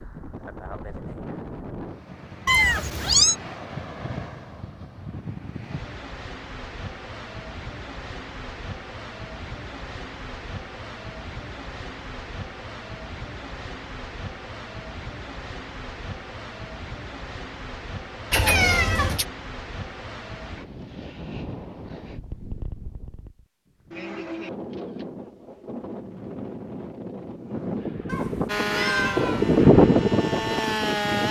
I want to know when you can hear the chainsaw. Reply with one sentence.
You can hear the chainsaw from 28.4 to 31.2 s.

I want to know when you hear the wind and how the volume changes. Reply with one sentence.
The wind can be heard from 0.0 to 31.2 s, getting louder.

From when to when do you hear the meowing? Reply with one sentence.
You can hear the meowing from 2.5 to 3.4 s, from 18.3 to 19.2 s and from 28.1 to 29.4 s.